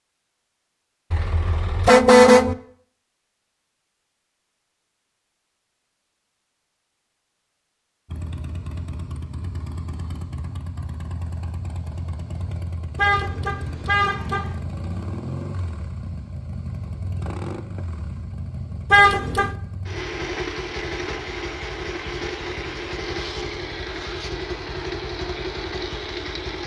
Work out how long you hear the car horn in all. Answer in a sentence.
The car horn can be heard for 4 seconds in total.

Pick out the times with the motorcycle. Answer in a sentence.
The motorcycle can be heard from 8.1 to 26.6 s.